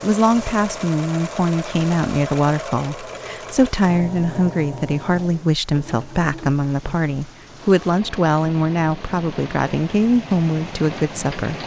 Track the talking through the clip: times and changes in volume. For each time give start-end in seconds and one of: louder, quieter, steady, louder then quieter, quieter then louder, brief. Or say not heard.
0.0-11.6 steady.